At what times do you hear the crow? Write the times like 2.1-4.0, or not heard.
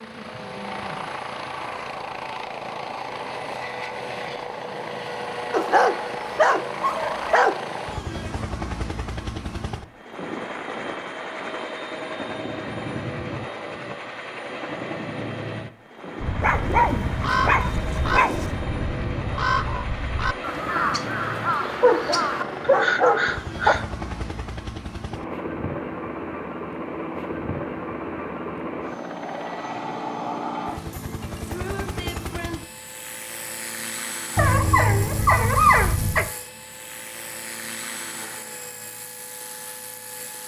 16.1-23.9.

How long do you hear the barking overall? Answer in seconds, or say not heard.
8 s.